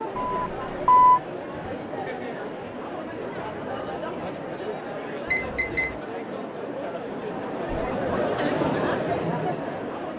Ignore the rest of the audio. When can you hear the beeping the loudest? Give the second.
1 s.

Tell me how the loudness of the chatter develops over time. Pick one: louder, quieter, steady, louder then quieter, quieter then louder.
louder.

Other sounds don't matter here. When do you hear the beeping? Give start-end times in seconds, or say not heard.
0.1-1.2, 5.3-6.0.